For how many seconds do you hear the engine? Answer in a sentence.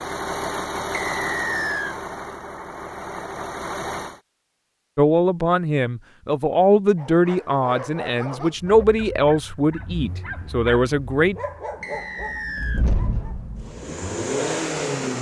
The engine can be heard for 11 seconds in total.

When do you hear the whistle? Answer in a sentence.
You can hear the whistle from 0.9 to 1.9 s and from 11.8 to 12.8 s.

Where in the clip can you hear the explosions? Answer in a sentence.
You can hear the explosions from 12.8 to 13.7 s.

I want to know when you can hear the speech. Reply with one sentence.
You can hear the speech from 5.0 to 11.3 s.